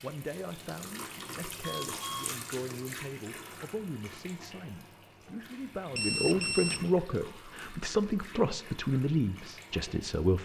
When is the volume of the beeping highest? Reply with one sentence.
The loudest moment of the beeping is at 6 seconds.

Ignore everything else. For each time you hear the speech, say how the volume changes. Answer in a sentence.
You can hear the speech from 0.0 to 10.4 s, getting louder.